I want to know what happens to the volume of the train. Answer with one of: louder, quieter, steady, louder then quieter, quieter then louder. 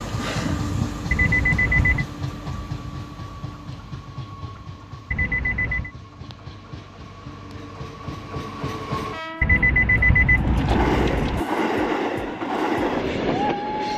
quieter then louder.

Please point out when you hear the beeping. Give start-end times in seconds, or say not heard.
1.1-2.0, 5.1-5.9, 9.4-11.4.